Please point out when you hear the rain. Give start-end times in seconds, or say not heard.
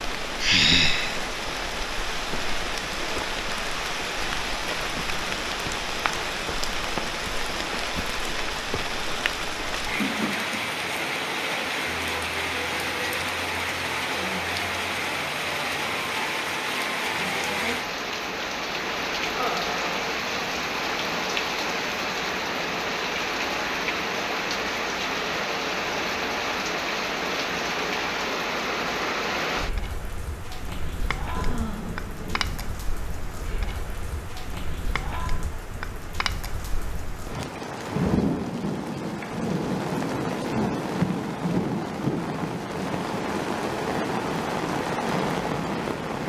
0.0-46.2.